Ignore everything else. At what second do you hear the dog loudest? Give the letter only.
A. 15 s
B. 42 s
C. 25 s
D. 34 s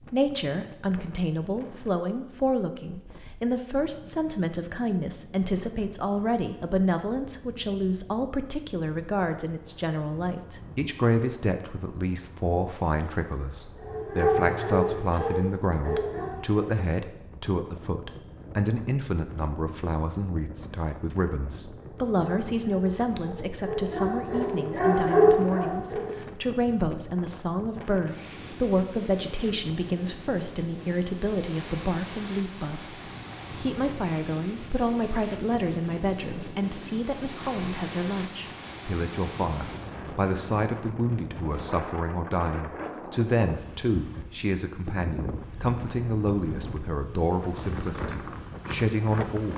C.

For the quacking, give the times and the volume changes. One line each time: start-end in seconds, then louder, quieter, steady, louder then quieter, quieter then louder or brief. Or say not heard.
not heard.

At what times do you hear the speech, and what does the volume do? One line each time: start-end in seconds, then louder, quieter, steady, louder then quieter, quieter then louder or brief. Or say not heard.
0.0-49.5 steady.